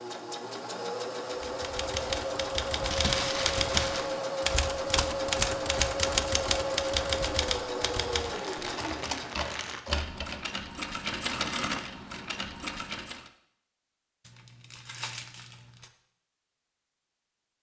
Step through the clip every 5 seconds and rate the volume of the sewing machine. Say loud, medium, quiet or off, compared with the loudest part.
loud, loud, loud, off.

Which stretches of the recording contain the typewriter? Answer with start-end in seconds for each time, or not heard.
1.4-10.4.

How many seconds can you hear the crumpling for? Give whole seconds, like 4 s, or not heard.
5 s.